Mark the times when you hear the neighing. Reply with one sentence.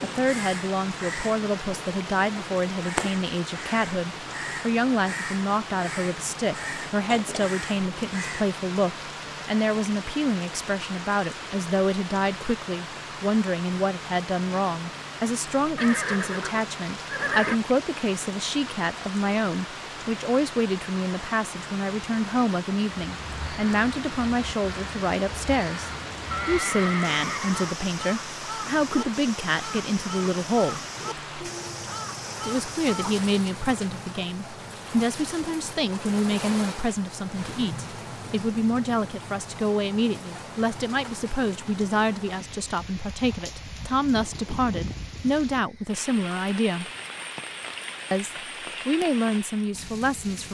You can hear the neighing from 15.8 to 17.6 s and from 26.3 to 27.8 s.